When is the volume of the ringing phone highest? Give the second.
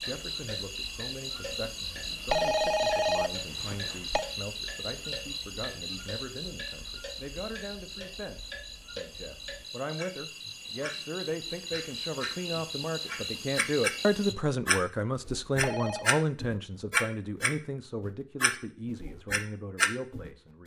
2 s.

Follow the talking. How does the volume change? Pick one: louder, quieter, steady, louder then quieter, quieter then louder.
louder then quieter.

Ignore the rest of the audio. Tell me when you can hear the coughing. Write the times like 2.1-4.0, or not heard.
not heard.